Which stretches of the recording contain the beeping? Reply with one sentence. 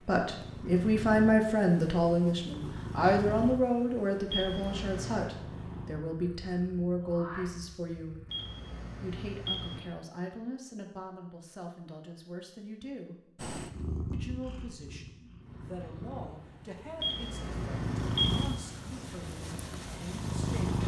You can hear the beeping from 4.3 to 5.3 s, from 8.3 to 9.8 s and from 17.0 to 18.4 s.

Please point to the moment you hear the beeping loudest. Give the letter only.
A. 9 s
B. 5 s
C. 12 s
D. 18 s
D.